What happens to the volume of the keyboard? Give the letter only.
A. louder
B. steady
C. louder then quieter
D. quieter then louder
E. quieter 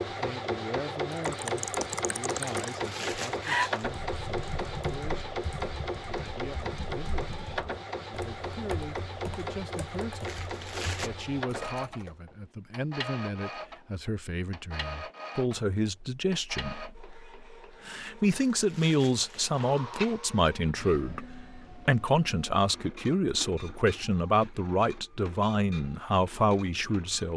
E.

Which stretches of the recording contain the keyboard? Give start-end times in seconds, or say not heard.
1.1-12.2.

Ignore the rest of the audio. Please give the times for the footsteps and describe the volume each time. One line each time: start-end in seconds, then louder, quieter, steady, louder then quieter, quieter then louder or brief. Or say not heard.
not heard.